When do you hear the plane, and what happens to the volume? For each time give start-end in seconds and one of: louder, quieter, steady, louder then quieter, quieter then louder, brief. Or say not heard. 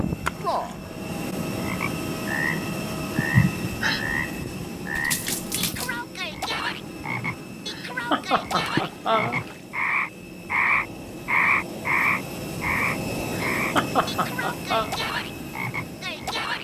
0.0-16.5 quieter then louder.